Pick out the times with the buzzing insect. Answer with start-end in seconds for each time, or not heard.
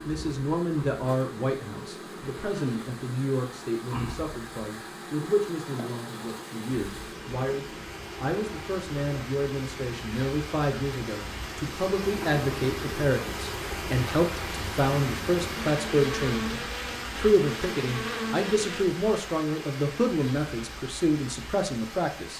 0.0-18.9.